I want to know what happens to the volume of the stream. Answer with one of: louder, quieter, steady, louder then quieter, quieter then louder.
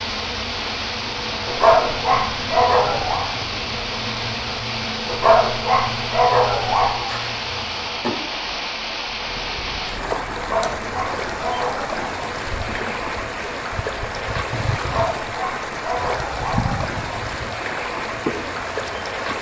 steady.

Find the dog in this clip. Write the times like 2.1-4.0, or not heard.
1.4-3.2, 5.0-7.0, 10.3-12.1, 14.8-16.8.